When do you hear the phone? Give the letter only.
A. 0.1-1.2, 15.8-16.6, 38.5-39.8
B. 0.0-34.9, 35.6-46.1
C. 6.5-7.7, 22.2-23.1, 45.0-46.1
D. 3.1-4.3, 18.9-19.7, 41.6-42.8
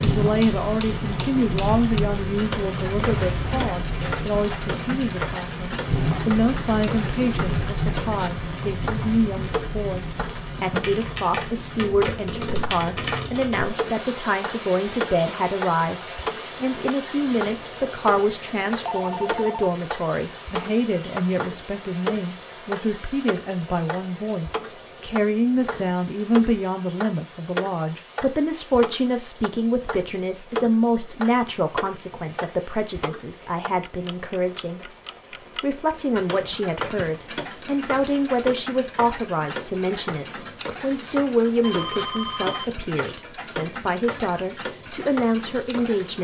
D.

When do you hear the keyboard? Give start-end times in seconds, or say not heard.
10.7-13.7.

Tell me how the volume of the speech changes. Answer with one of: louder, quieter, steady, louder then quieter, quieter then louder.
steady.